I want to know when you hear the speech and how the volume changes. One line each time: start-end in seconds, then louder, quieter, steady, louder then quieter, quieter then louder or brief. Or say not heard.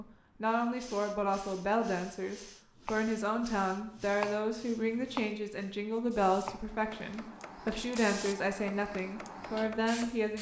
0.0-10.3 steady.